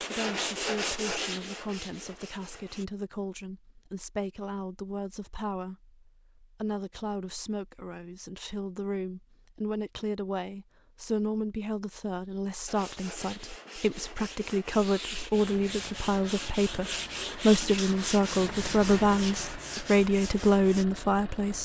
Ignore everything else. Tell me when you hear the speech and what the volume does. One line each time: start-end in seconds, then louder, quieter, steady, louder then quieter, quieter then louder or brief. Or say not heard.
0.0-21.6 louder.